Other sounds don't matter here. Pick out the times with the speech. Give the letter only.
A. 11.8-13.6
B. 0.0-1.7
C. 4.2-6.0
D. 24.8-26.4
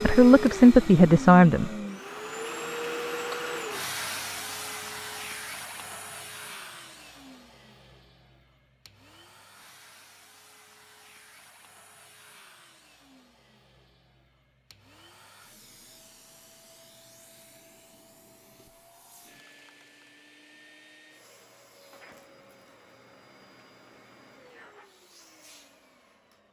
B.